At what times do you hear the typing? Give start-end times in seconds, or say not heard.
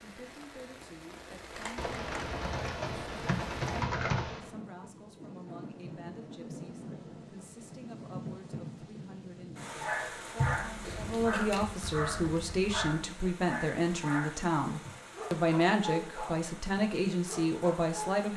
1.8-4.5, 10.3-12.9.